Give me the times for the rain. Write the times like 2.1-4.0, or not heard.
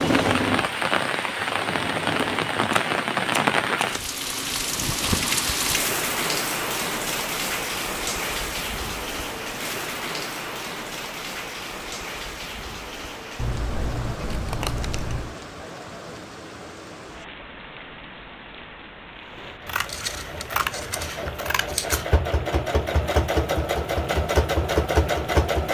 0.0-25.7.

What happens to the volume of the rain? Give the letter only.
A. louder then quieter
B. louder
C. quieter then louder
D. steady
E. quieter
E.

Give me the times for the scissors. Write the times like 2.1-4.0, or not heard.
2.7-4.0, 13.3-15.3, 19.6-22.1.